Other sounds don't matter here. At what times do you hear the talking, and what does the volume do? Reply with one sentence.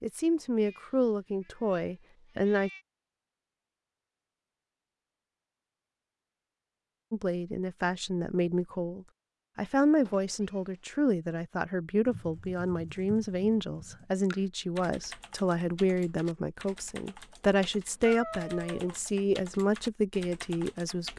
You can hear the talking briefly from 0.0 to 2.7 s; and from 7.1 to 21.1 s, at a steady volume.